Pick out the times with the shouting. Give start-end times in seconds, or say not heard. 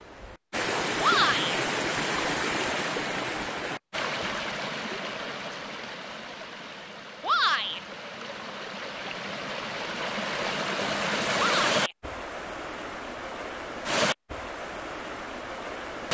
1.0-1.6, 7.2-7.8, 11.3-11.9.